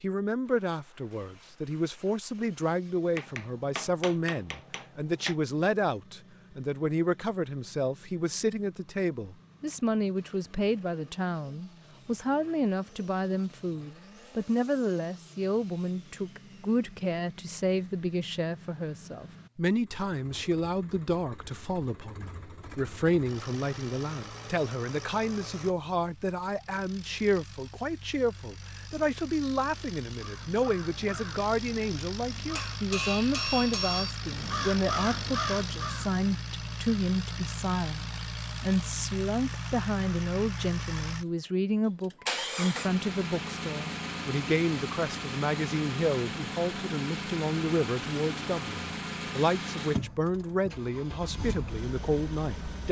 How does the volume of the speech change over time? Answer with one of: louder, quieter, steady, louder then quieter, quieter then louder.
steady.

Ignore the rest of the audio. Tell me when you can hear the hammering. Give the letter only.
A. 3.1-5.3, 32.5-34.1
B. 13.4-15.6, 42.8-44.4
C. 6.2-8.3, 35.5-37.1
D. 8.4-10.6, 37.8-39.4
A.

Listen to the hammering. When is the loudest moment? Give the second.
34 s.